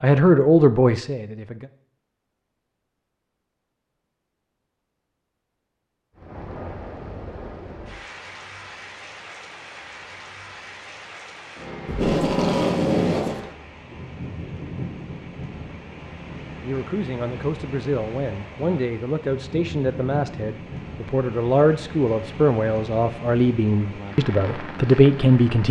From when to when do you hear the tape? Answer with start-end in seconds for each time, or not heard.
11.8-13.4.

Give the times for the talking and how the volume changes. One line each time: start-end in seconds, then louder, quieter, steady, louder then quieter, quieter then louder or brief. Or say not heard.
0.0-1.7 brief
16.6-25.6 louder.